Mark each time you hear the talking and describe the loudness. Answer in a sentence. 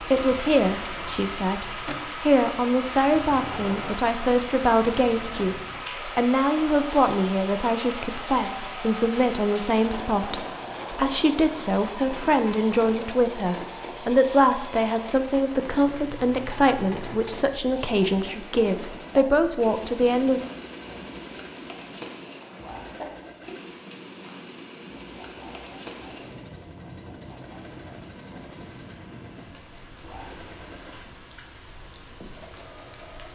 You can hear the talking from 0.0 to 20.4 s, at a steady volume.